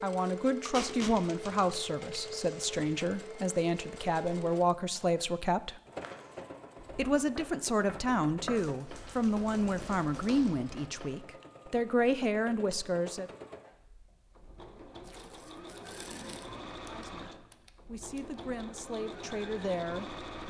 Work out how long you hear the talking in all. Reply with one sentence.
The talking can be heard for 16 seconds in total.